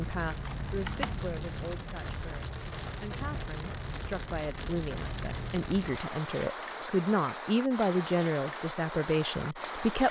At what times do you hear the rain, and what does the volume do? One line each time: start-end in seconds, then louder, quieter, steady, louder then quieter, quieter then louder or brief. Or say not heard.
0.0-10.0 steady.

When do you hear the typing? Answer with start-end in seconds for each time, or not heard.
0.1-1.9.